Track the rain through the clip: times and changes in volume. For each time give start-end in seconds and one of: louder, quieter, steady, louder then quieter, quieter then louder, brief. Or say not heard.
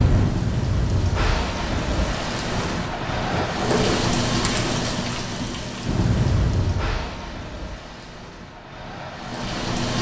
0.0-9.9 quieter.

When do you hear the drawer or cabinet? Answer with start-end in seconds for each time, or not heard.
3.3-4.1.